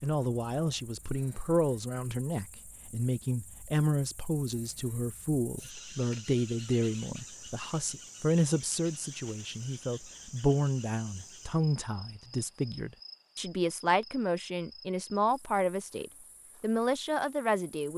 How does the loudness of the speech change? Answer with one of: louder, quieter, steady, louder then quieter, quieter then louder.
steady.